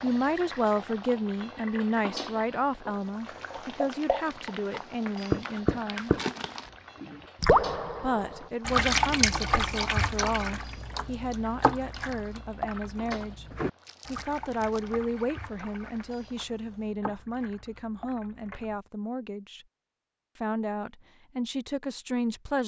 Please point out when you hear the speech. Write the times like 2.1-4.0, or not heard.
0.0-6.2, 8.0-19.6, 20.4-22.6.